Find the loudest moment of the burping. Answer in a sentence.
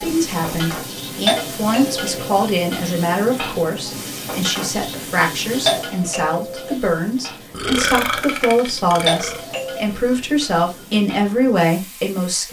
The loudest moment of the burping is at 8 seconds.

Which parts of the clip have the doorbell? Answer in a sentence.
You can hear the doorbell from 1.2 to 2.1 s, from 5.7 to 6.8 s and from 9.1 to 9.8 s.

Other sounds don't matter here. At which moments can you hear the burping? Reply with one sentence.
You can hear the burping from 7.5 to 9.4 s.